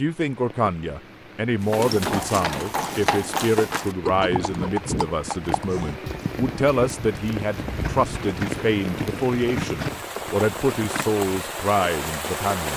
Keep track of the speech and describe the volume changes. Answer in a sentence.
The loudness of the speech stays about the same.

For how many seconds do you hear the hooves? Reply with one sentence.
The hooves can be heard for 10 seconds in total.